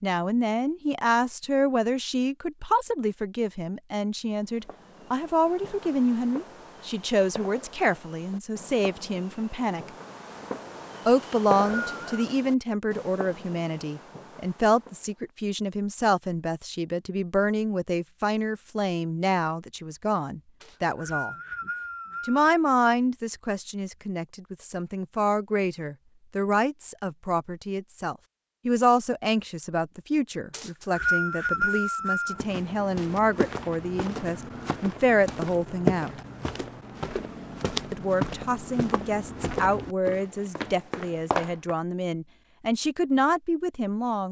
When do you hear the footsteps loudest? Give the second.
36 s.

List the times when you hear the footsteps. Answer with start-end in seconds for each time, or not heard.
32.4-41.8.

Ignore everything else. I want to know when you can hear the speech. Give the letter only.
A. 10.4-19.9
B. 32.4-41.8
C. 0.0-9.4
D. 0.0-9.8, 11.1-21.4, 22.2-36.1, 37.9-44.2
D.